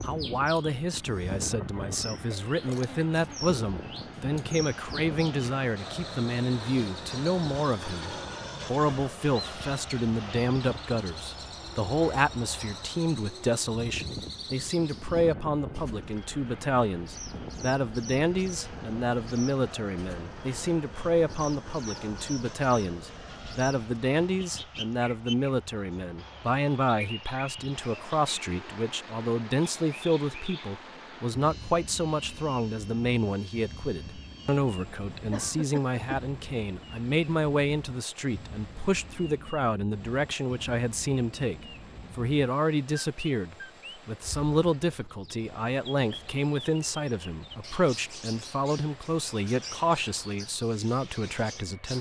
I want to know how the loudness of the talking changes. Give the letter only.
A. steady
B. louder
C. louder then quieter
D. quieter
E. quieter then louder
A.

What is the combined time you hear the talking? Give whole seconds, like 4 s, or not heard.
52 s.